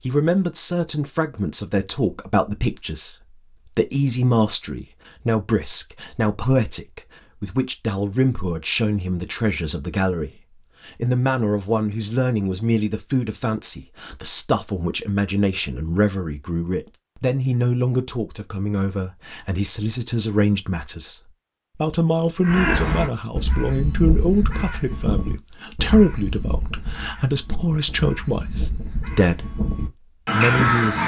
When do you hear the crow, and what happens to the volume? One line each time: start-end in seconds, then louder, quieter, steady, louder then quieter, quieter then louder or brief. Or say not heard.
22.4-31.0 quieter then louder.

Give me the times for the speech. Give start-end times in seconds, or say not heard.
0.1-29.5, 30.3-31.0.